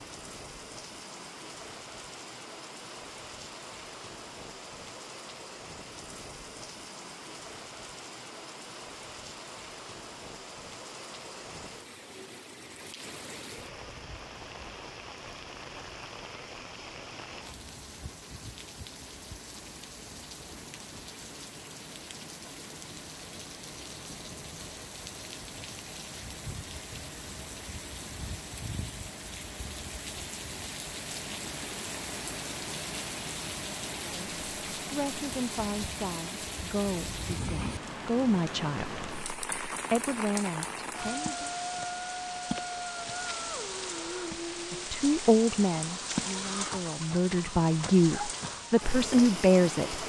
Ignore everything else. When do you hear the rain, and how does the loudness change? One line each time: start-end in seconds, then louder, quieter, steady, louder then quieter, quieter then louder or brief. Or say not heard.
0.0-50.0 louder.